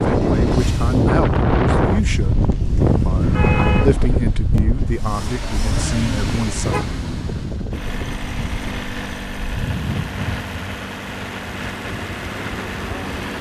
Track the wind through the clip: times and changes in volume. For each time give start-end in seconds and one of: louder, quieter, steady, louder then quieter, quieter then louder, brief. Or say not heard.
0.0-13.3 quieter.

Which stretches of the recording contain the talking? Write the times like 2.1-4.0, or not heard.
0.1-6.8.